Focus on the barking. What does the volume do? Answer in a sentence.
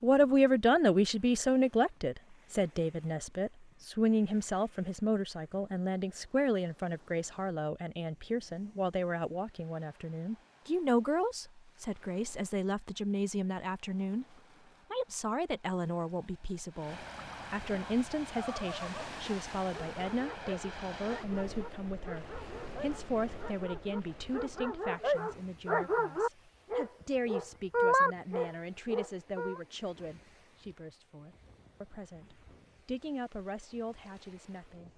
The volume of the barking goes up.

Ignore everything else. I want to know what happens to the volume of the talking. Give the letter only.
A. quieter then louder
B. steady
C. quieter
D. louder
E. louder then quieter
C.